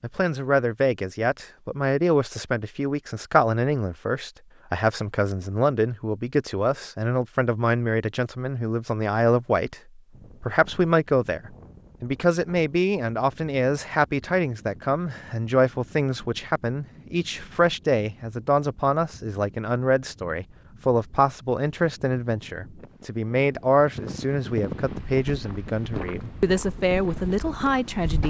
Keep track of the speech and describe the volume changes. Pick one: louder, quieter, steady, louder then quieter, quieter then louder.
steady.